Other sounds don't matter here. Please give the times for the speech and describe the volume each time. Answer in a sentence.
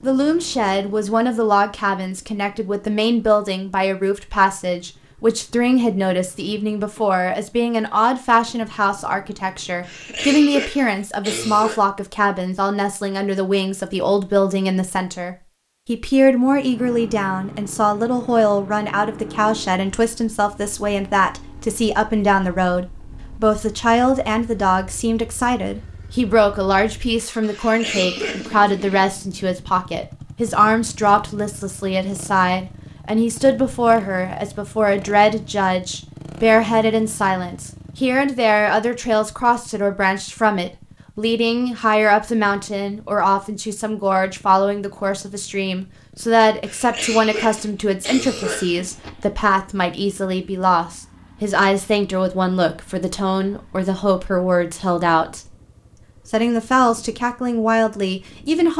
The speech can be heard from 0.0 to 55.5 s, at a steady volume; and briefly from 56.3 to 58.7 s.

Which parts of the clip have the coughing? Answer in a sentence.
The coughing can be heard from 9.8 to 11.8 s, from 27.5 to 28.6 s and from 46.6 to 49.1 s.